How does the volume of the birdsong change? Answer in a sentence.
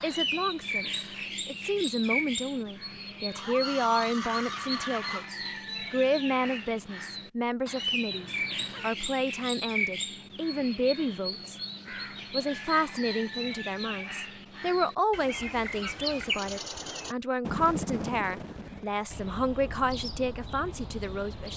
The loudness of the birdsong stays about the same.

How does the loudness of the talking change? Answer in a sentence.
The loudness of the talking stays about the same.